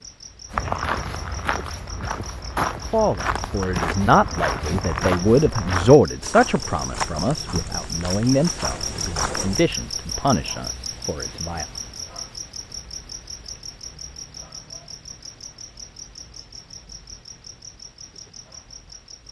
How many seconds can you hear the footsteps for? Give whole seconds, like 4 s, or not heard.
9 s.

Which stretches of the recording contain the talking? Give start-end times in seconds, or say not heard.
2.9-11.7.